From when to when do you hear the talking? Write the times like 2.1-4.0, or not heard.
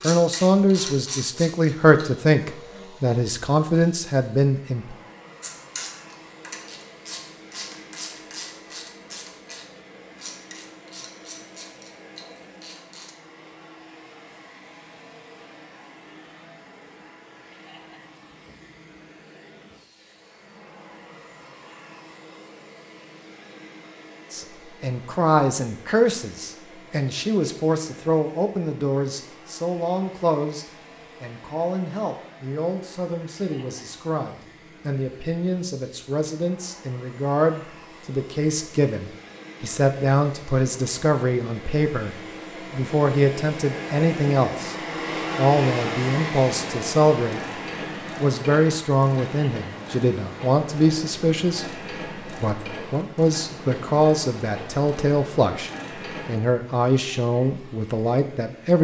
0.0-5.0, 24.3-44.8, 45.4-58.7.